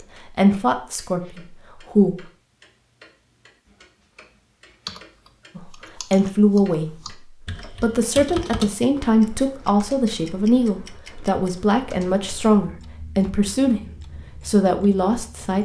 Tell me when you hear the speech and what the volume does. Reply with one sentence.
The speech can be heard briefly from 0.0 to 2.2 s; and from 5.5 to 15.6 s, at a steady volume.